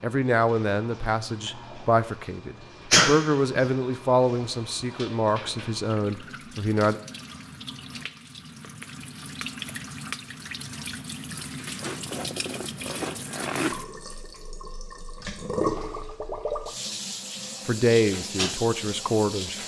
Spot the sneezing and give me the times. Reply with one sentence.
The sneezing can be heard from 2.9 to 3.6 s.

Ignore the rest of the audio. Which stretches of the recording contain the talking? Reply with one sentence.
The talking can be heard from 0.0 to 7.0 s and from 17.6 to 19.6 s.